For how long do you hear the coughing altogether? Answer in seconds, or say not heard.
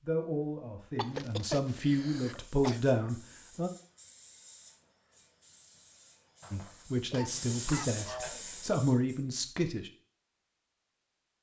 4 s.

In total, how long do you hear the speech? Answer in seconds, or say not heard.
7 s.